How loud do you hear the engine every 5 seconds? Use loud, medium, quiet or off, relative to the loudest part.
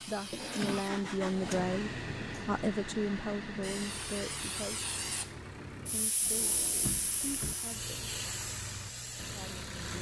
loud, medium.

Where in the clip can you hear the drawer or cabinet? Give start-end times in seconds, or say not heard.
0.3-1.6, 6.2-7.5.